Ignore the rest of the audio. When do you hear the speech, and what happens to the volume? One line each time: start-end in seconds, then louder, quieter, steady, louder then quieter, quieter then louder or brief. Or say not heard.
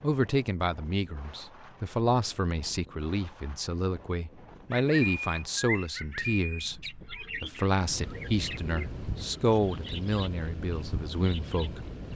0.0-12.1 steady.